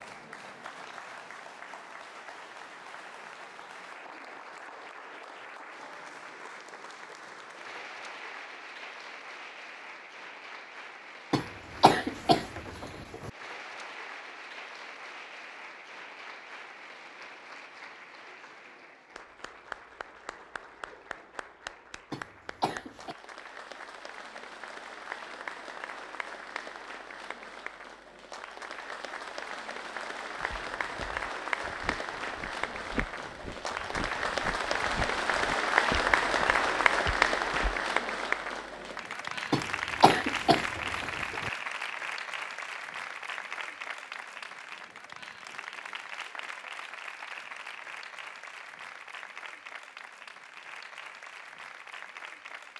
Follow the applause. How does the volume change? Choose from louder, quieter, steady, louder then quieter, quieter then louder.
louder then quieter.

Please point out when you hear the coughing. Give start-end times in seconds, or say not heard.
11.3-13.3, 22.1-23.1, 39.5-41.5.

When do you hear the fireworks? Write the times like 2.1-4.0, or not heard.
not heard.